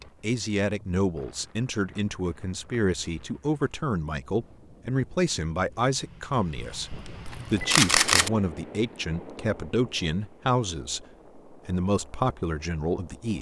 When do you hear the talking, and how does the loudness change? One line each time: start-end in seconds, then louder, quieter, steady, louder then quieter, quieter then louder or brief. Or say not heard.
0.0-13.3 steady.